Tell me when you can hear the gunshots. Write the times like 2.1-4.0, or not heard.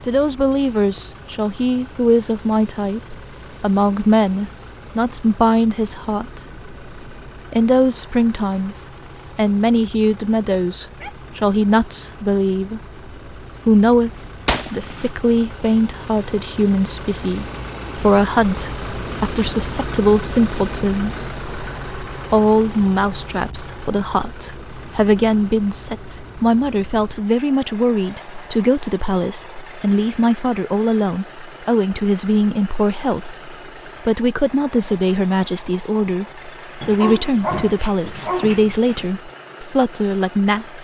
14.4-15.1.